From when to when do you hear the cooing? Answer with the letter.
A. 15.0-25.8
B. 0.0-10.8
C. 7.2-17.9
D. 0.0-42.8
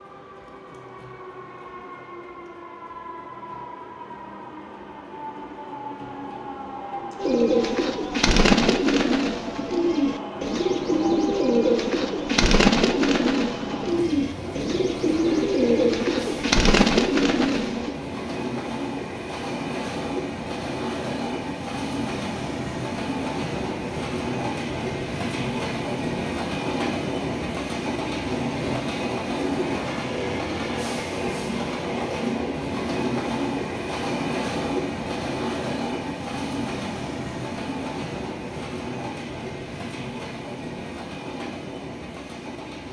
C.